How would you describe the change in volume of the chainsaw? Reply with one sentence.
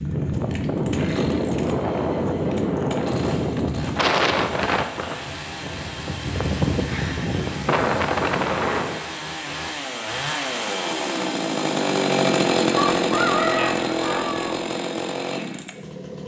The loudness of the chainsaw goes up.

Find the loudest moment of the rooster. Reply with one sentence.
The volume of the rooster peaks at 13 seconds.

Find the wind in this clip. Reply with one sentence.
You can hear the wind from 0.0 to 9.1 s.